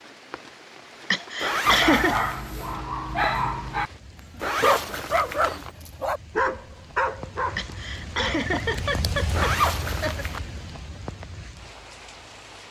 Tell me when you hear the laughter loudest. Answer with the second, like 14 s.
2 s.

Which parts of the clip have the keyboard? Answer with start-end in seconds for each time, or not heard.
not heard.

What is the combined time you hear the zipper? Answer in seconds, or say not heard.
3 s.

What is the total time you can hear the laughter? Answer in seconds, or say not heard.
4 s.